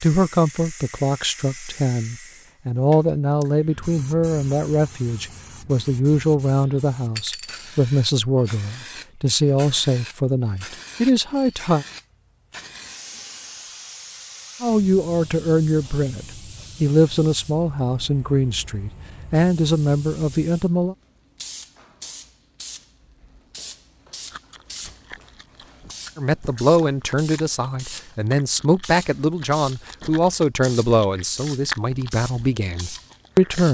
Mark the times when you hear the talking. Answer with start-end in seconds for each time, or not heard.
0.0-11.8, 14.6-20.9, 26.1-33.6.